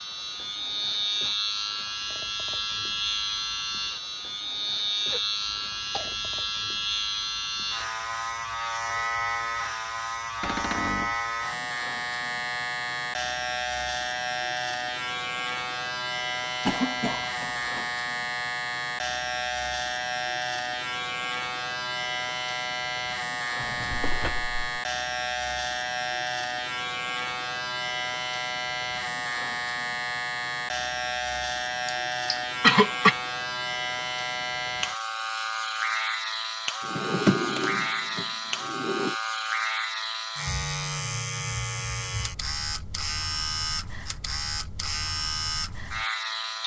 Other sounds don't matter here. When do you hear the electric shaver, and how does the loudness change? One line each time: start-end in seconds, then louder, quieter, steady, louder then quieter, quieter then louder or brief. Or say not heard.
0.0-46.6 steady.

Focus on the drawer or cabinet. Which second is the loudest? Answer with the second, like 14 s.
37 s.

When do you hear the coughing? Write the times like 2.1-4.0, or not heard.
5.1-6.3, 16.6-17.9, 31.9-33.1.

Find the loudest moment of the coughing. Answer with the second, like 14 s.
33 s.